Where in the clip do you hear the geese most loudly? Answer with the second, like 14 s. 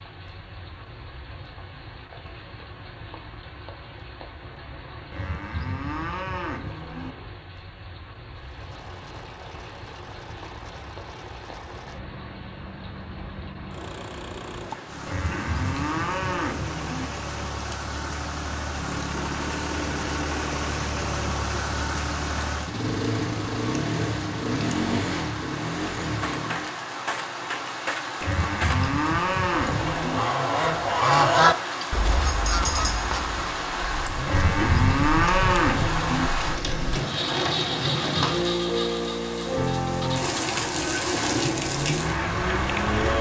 31 s.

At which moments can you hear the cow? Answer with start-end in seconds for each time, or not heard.
5.1-7.2, 15.1-17.1, 28.2-30.2, 34.2-36.3.